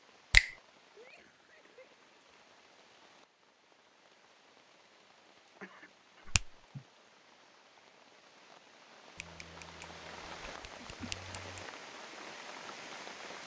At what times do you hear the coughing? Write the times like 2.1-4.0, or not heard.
0.9-2.0, 5.6-6.8, 10.8-11.2.